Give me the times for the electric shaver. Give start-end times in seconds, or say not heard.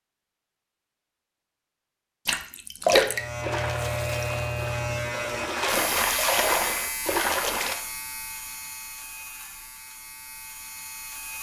3.0-11.3.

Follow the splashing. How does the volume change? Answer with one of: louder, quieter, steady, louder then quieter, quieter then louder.
quieter then louder.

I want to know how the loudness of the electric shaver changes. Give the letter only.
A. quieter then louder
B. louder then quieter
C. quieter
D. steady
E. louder
C.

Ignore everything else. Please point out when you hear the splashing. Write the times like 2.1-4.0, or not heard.
2.2-7.8.